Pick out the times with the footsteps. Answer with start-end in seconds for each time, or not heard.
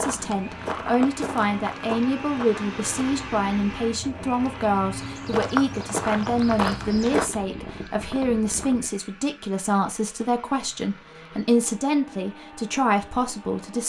0.0-3.1, 5.0-7.2.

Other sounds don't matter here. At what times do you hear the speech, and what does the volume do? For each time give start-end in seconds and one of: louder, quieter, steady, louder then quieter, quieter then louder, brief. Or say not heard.
0.0-13.8 steady.